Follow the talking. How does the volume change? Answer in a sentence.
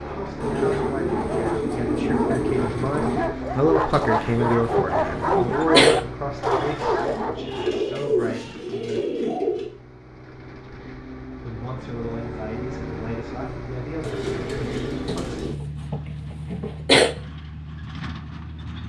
The loudness of the talking goes up, then down.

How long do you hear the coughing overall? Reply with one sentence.
You can hear the coughing for 4 seconds altogether.